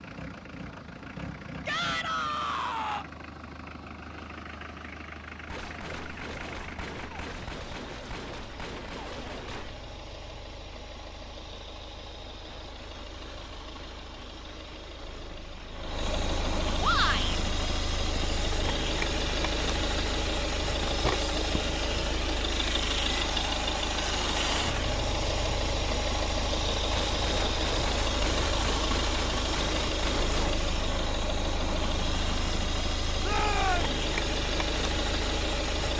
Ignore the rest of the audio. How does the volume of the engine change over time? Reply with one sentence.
The volume of the engine goes up.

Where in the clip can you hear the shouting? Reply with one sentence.
You can hear the shouting from 1.6 to 3.0 s, from 16.8 to 17.4 s and from 33.2 to 34.0 s.